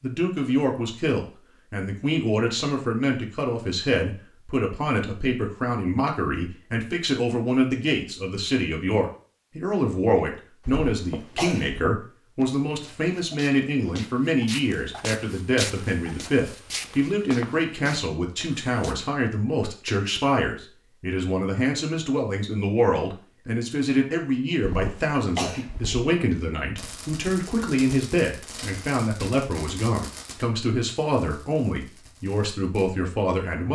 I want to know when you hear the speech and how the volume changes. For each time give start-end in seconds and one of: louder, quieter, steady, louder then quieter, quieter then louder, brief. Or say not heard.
0.0-33.7 steady.